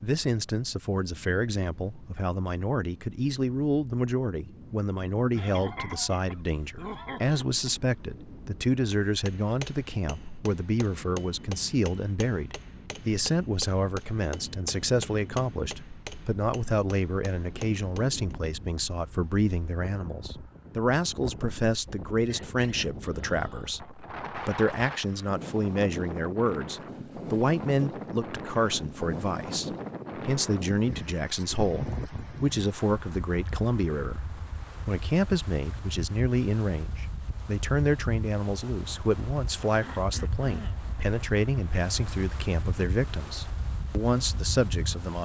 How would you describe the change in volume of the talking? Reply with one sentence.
The loudness of the talking stays about the same.